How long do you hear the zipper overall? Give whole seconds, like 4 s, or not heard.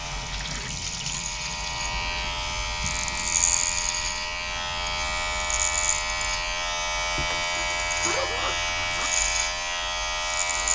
2 s.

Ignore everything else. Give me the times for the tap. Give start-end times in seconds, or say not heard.
0.0-3.5.